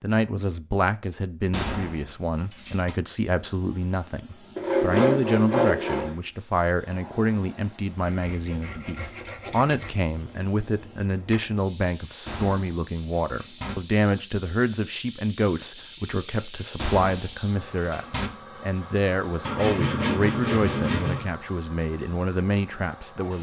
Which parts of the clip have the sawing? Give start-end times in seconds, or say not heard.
4.5-6.2, 8.0-9.9, 19.4-21.2.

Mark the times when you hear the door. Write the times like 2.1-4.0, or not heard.
1.5-3.0, 12.2-13.8, 16.8-18.3.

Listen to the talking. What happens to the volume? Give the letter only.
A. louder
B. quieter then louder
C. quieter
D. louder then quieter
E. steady
E.